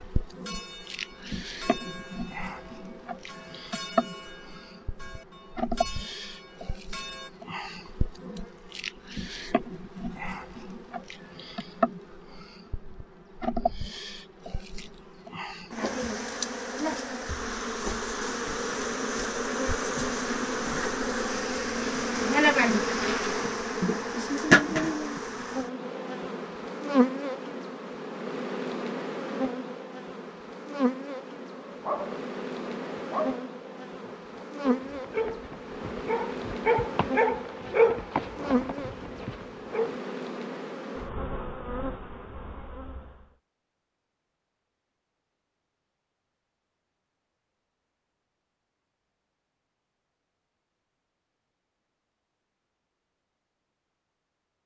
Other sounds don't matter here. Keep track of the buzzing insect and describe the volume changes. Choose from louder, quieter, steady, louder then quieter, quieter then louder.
louder then quieter.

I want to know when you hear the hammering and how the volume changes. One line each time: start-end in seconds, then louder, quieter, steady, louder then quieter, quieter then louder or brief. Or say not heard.
not heard.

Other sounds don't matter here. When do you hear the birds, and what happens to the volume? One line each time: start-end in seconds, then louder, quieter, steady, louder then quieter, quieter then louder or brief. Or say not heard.
not heard.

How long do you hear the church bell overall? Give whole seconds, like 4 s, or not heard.
7 s.